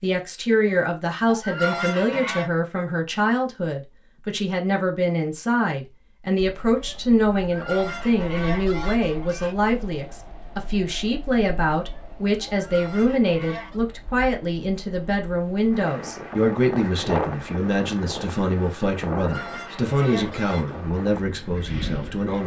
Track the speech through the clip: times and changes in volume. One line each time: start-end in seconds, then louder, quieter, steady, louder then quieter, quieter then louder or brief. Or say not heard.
0.0-22.4 steady.